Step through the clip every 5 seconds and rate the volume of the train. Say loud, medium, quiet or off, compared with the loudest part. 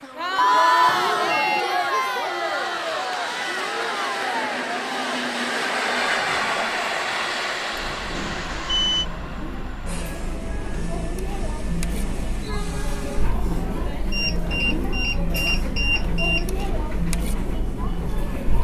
medium, loud, medium, quiet.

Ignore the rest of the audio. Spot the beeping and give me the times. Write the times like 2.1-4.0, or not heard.
0.3-1.6, 8.2-9.1, 14.1-16.6.